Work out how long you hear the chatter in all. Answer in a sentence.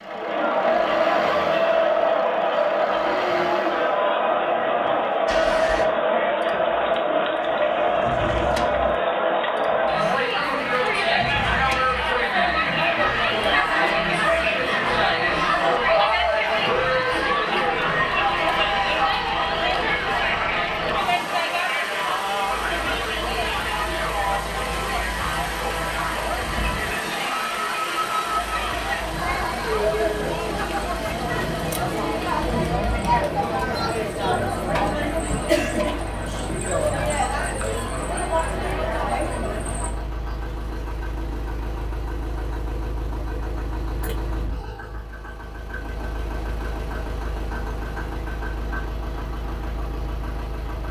The chatter can be heard for 40 seconds in total.